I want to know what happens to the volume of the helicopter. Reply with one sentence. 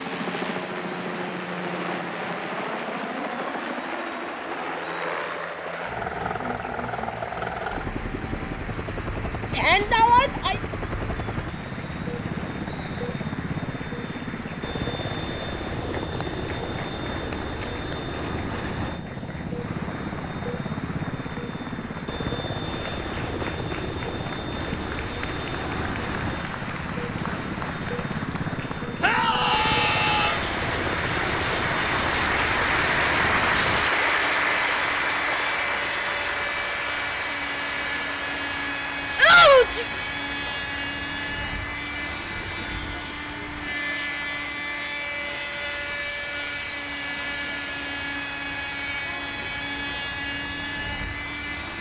The loudness of the helicopter stays about the same.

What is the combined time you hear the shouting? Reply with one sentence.
The shouting can be heard for 3 seconds in total.